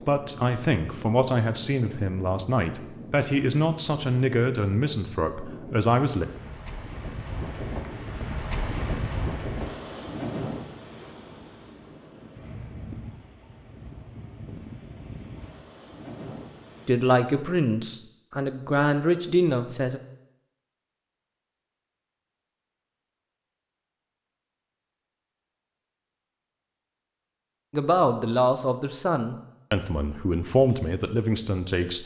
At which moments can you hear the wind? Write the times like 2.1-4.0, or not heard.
0.0-16.9.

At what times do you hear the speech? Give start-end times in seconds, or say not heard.
0.1-6.2, 16.9-20.0, 27.7-32.0.